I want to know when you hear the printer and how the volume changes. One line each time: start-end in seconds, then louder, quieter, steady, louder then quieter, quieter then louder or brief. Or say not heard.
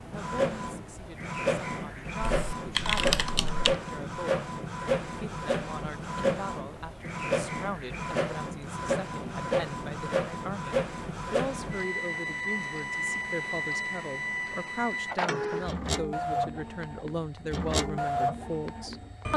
0.0-19.3 steady.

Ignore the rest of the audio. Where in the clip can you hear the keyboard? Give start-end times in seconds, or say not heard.
2.2-3.8.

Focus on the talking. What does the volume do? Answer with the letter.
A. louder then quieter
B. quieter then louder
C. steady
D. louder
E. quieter
D.